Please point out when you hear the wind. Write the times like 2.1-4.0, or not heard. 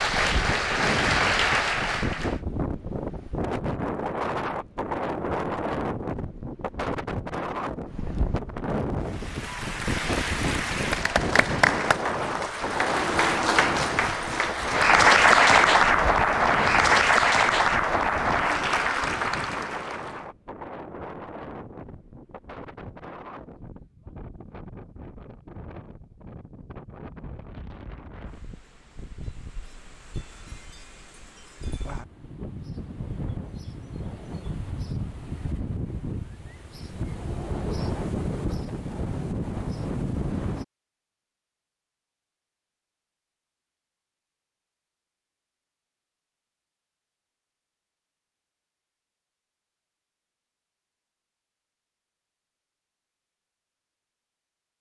0.0-40.6.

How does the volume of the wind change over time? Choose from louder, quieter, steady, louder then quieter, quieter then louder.
quieter then louder.